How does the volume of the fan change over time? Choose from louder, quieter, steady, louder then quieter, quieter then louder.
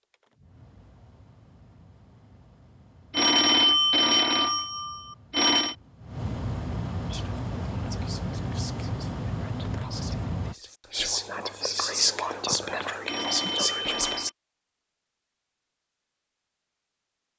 louder.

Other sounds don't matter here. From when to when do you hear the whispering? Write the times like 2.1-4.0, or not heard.
7.0-14.3.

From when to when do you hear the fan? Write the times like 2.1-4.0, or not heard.
0.0-10.6.